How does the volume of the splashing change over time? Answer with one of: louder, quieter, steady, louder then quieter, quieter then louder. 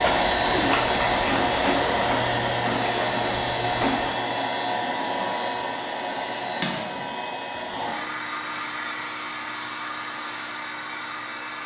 quieter.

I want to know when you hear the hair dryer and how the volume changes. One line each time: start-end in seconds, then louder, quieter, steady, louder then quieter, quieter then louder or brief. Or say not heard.
0.0-11.6 quieter.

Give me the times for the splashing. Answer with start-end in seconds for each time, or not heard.
0.0-4.2.